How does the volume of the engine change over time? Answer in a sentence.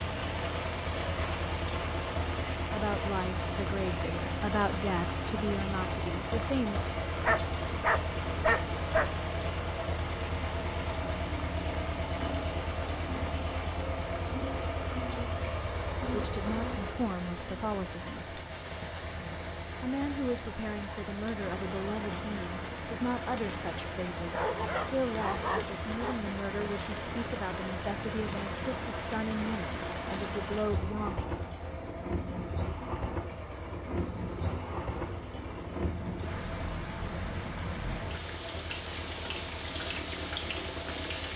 The loudness of the engine goes down.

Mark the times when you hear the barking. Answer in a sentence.
You can hear the barking from 7.2 to 9.1 s and from 24.3 to 26.1 s.